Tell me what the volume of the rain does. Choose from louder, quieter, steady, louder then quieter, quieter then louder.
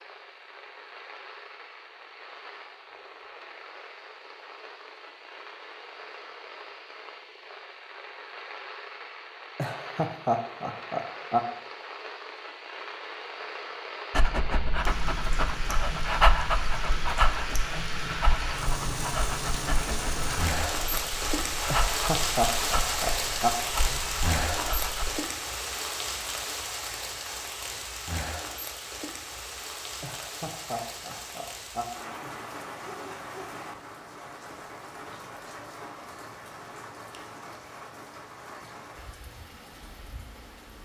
louder then quieter.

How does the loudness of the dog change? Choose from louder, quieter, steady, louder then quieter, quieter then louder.
quieter.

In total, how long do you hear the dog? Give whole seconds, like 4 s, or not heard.
11 s.